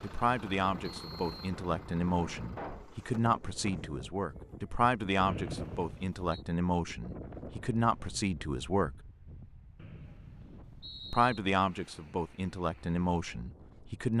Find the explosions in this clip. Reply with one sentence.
You can hear the explosions from 2.5 to 3.0 s.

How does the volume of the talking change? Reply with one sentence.
The volume of the talking stays about the same.